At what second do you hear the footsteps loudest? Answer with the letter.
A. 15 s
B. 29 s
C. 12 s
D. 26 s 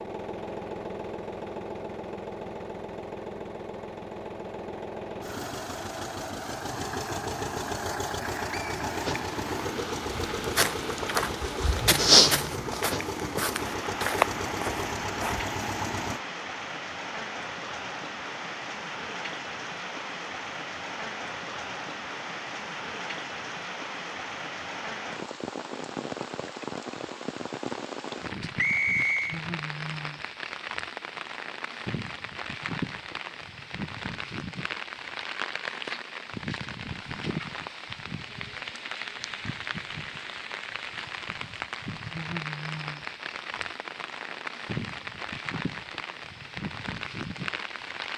C.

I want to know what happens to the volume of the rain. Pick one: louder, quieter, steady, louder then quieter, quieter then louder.
steady.